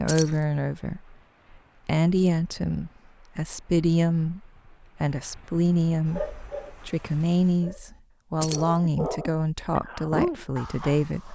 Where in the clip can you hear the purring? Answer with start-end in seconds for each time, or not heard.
not heard.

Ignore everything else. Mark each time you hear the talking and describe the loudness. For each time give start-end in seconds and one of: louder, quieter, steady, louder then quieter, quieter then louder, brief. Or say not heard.
0.0-11.2 steady.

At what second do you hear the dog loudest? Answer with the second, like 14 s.
10 s.